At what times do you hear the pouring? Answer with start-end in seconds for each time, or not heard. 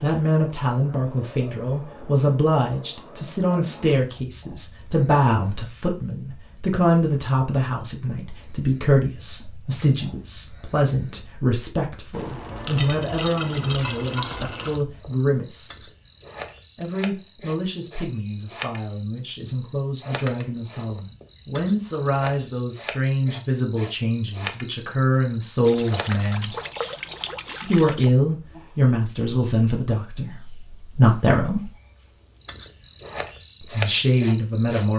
12.1-14.8, 25.6-28.1.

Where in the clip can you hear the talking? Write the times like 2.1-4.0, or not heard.
0.0-15.8, 16.8-26.6, 27.6-31.7, 33.6-34.9.